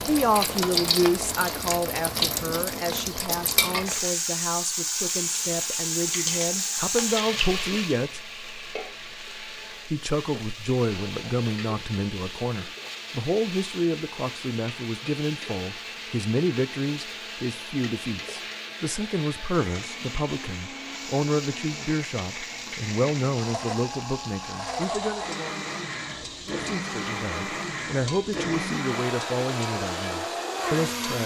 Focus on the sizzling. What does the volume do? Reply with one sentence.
The loudness of the sizzling goes down.